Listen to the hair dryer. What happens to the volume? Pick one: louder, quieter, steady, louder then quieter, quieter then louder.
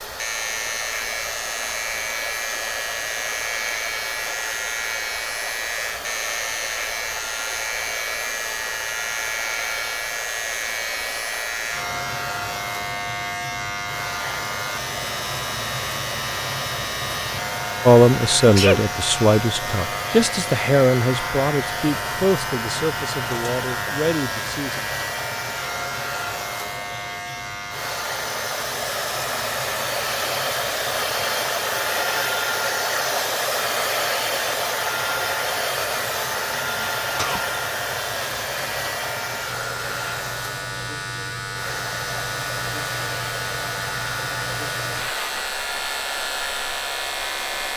louder then quieter.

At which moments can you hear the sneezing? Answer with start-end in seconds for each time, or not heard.
18.4-18.8, 36.5-37.5.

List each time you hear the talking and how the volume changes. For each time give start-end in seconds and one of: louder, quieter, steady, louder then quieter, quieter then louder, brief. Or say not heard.
17.9-24.8 quieter.